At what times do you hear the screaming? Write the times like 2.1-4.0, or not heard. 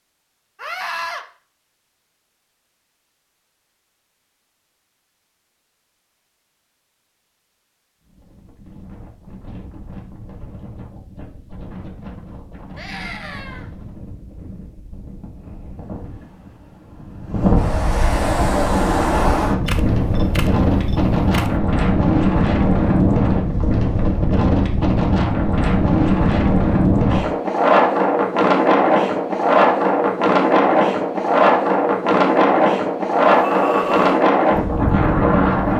0.6-1.2, 12.8-13.7, 33.2-34.2.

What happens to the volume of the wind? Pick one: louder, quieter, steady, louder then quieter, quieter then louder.
louder.